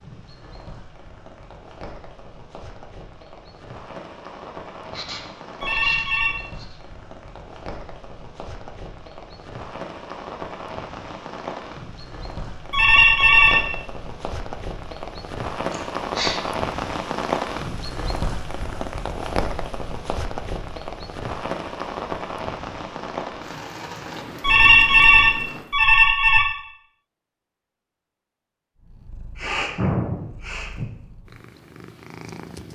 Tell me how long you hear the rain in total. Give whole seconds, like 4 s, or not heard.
26 s.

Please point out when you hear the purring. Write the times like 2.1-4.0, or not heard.
28.8-32.7.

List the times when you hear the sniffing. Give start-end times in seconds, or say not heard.
4.9-6.8, 15.7-16.4, 29.4-30.9.